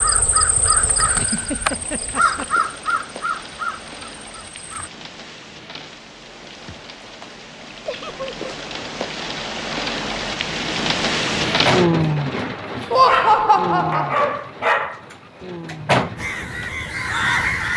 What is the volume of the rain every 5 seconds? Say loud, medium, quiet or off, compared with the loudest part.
quiet, medium, loud, quiet.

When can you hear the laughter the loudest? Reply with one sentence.
The loudest moment of the laughter is at 13 seconds.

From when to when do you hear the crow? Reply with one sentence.
The crow can be heard from 0.0 to 4.9 s and from 16.1 to 17.7 s.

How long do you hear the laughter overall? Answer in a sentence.
You can hear the laughter for 3 seconds altogether.